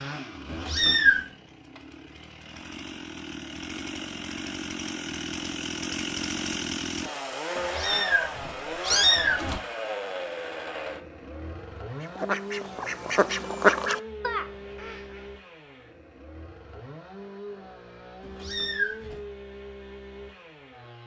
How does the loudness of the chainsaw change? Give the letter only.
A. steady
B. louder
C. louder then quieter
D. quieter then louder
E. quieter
C.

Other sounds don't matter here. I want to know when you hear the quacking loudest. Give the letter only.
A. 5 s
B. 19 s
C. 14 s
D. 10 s
C.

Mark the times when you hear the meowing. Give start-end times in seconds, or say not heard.
0.5-1.2, 7.5-9.6, 18.2-19.2.